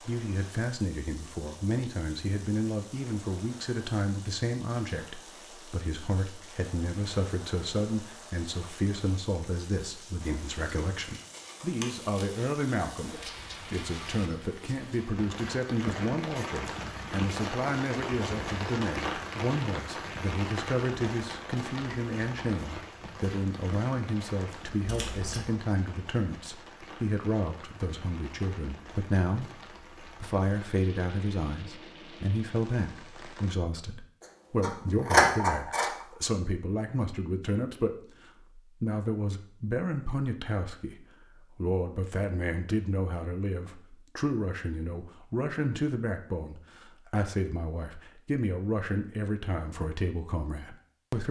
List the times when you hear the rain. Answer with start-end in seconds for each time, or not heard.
0.0-33.5.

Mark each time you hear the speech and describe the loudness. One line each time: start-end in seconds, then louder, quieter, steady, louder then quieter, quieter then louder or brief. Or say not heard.
0.1-51.2 steady.